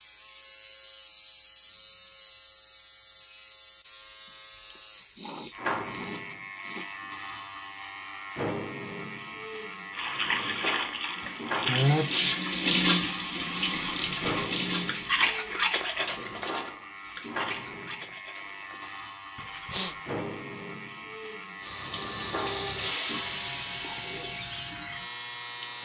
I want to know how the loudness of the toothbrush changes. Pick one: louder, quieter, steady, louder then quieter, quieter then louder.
louder then quieter.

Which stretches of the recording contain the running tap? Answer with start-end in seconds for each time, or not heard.
9.9-15.3, 21.6-25.8.